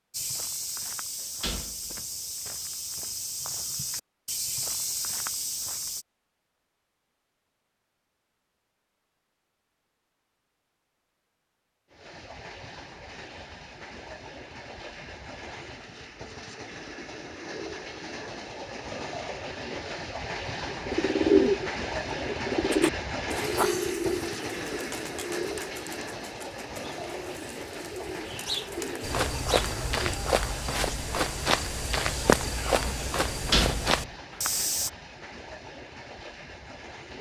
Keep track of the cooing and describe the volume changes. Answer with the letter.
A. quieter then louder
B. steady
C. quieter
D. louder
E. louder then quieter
A.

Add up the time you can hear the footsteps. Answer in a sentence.
The footsteps can be heard for 12 seconds in total.